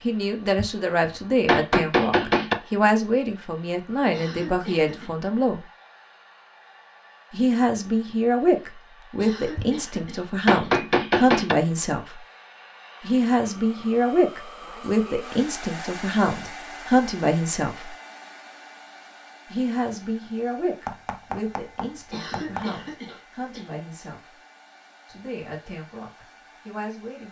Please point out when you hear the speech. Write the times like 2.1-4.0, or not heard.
0.0-5.6, 7.3-12.2, 13.0-17.9, 19.5-24.4, 25.1-27.2.